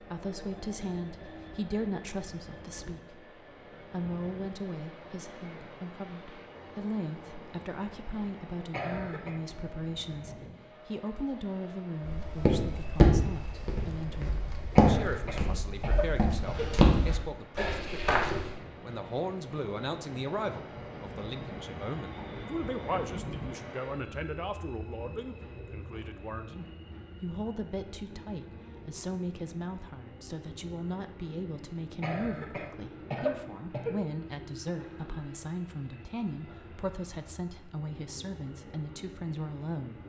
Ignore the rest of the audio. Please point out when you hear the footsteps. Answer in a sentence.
The footsteps can be heard from 12.1 to 18.6 s.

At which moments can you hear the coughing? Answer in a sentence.
You can hear the coughing from 8.7 to 9.3 s, from 14.8 to 16.7 s and from 32.0 to 34.0 s.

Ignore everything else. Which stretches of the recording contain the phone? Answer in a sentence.
The phone can't be heard in this clip.